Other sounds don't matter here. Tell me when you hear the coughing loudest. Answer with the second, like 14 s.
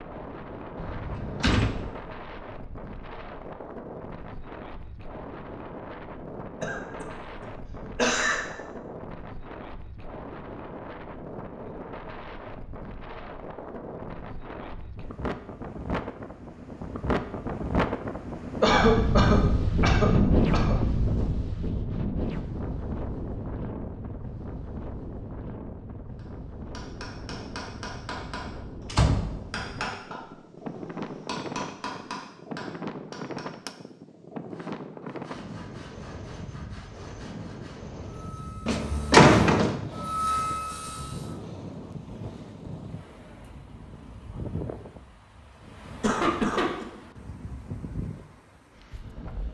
19 s.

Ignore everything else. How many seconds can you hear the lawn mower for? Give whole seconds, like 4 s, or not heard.
not heard.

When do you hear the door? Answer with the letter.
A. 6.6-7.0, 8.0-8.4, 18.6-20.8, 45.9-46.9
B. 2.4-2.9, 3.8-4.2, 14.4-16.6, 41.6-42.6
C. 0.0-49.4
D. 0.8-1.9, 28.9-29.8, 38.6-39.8
D.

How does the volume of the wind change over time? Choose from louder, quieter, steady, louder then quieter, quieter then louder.
louder then quieter.